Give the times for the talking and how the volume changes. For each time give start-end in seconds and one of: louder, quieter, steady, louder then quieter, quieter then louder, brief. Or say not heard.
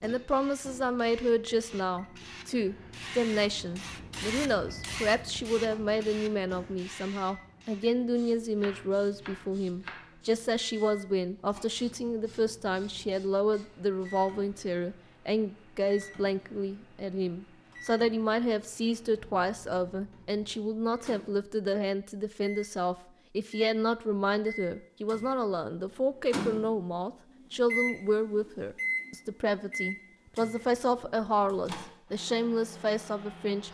0.0-33.7 steady.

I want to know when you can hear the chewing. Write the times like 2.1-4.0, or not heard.
not heard.